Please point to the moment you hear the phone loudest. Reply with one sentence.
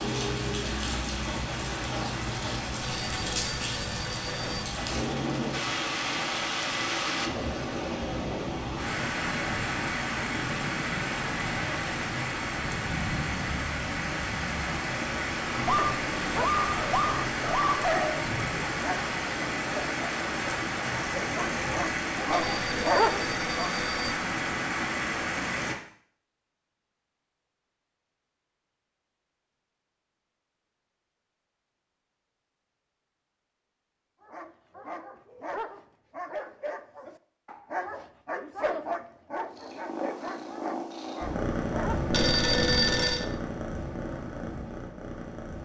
The volume of the phone peaks at 43 seconds.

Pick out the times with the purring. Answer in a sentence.
The purring can be heard from 39.4 to 45.6 s.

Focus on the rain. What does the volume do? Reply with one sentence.
The volume of the rain stays about the same.